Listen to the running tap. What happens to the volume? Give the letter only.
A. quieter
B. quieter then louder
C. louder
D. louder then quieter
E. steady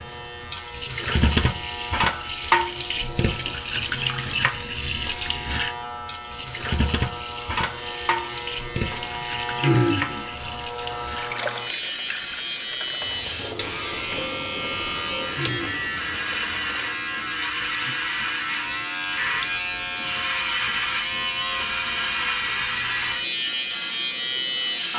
A.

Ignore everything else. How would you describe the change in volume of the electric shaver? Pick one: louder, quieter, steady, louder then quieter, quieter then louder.
louder.